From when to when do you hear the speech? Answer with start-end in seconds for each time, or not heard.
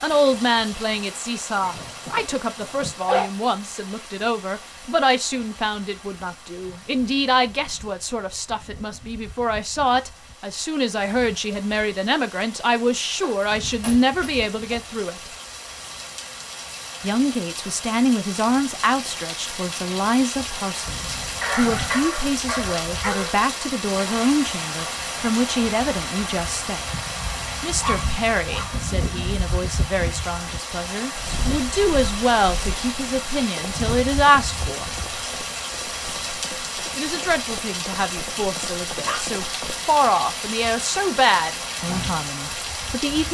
0.0-15.3, 17.0-26.8, 27.6-34.9, 37.0-43.2.